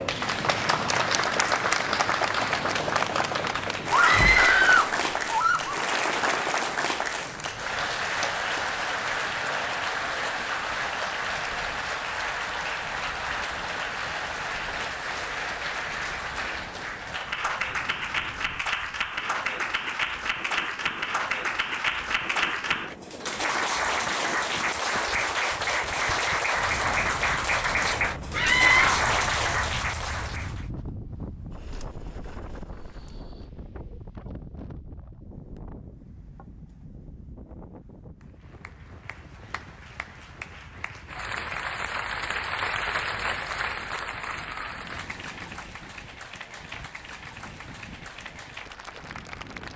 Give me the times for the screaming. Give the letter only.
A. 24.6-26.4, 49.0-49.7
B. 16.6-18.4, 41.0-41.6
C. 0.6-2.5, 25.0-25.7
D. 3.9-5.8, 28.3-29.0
D.